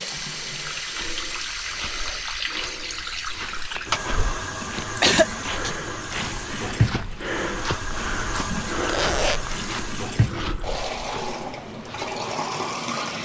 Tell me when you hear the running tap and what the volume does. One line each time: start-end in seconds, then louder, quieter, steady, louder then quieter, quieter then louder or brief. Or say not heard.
0.0-13.2 steady.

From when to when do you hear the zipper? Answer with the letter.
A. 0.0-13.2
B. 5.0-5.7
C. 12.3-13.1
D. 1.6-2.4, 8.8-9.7
D.